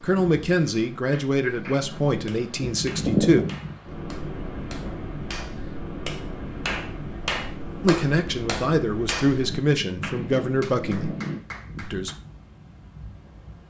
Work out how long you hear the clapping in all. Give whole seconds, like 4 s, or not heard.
11 s.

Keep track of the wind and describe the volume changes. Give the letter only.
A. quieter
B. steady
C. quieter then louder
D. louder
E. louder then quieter
E.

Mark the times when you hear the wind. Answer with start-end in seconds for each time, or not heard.
0.0-13.6.